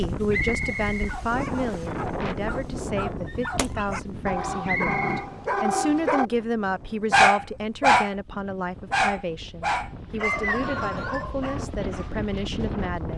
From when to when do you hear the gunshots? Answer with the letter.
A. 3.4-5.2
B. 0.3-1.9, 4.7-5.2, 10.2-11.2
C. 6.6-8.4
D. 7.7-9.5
A.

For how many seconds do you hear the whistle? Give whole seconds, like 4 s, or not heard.
3 s.